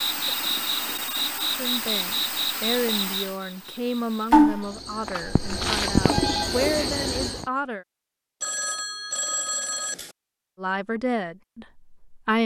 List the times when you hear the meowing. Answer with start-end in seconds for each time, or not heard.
5.2-6.3.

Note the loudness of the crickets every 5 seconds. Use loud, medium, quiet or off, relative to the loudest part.
loud, loud, off.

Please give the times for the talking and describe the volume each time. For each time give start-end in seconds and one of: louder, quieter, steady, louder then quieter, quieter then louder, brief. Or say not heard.
1.6-7.8 quieter then louder
10.6-12.4 brief.